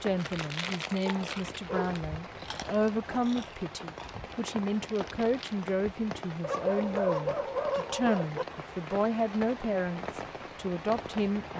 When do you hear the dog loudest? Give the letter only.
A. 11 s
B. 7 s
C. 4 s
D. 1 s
B.